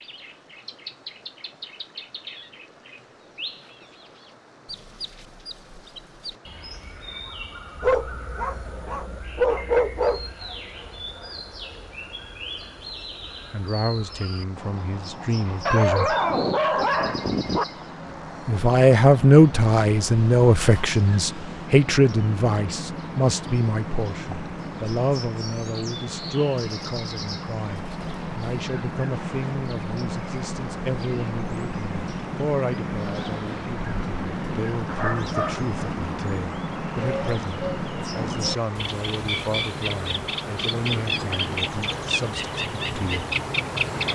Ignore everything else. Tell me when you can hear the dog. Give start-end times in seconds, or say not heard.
7.8-10.3, 15.7-17.6, 34.9-35.6.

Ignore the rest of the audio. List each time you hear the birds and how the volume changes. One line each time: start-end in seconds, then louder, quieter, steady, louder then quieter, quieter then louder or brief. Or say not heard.
0.0-44.1 louder.